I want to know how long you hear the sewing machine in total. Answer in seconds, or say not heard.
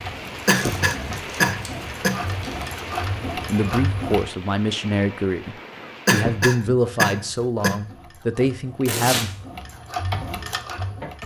9 s.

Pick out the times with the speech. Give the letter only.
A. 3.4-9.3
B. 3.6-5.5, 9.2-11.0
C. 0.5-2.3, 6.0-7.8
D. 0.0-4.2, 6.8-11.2
A.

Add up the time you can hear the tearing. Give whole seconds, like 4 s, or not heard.
3 s.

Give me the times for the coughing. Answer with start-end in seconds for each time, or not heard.
0.5-2.3, 6.0-7.8.